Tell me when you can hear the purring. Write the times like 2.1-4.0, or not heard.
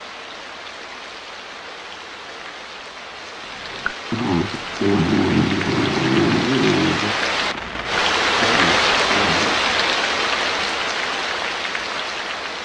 not heard.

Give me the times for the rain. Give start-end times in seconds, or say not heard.
0.0-12.6.